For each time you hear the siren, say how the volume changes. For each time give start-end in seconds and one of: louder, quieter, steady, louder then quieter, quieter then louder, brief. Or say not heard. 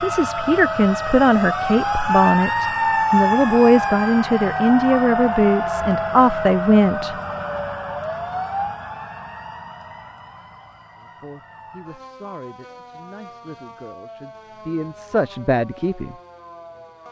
0.0-17.0 quieter.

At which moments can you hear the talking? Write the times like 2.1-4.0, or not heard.
0.0-7.2, 10.9-16.1.